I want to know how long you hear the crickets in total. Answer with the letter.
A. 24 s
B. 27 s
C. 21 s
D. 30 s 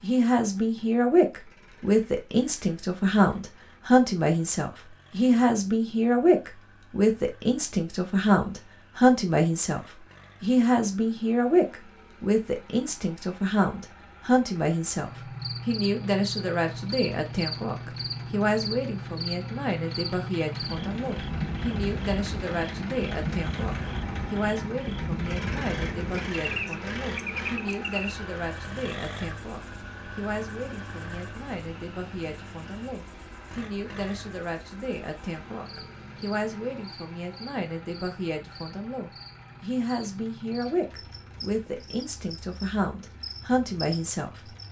D.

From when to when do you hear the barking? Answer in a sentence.
The barking can't be heard in this clip.